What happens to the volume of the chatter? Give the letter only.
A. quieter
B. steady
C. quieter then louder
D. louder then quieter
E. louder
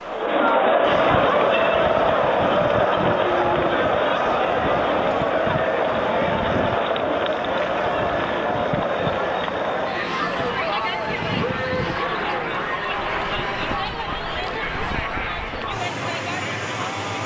A.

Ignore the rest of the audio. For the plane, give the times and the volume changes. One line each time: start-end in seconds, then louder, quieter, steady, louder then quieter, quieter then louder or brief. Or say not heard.
0.0-17.2 steady.